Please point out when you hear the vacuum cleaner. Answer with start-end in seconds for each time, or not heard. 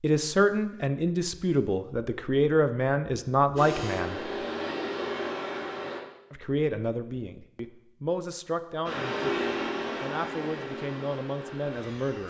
3.5-6.0, 8.8-12.2.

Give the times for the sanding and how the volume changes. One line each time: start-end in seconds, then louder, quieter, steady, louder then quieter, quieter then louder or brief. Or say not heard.
not heard.